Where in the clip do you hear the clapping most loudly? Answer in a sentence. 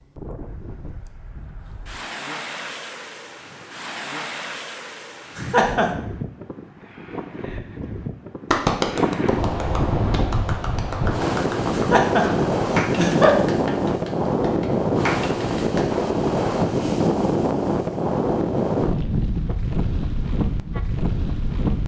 The loudest moment of the clapping is at 9 seconds.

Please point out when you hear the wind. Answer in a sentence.
You can hear the wind from 0.0 to 21.8 s.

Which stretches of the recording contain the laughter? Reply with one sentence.
The laughter can be heard from 5.3 to 6.0 s and from 11.7 to 13.3 s.